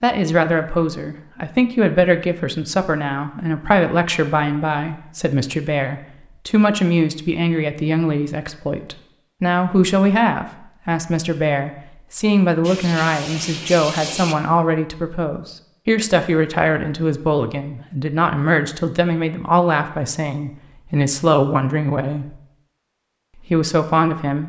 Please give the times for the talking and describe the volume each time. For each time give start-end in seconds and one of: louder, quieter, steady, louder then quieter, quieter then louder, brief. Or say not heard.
0.0-22.4 steady
23.4-24.4 brief.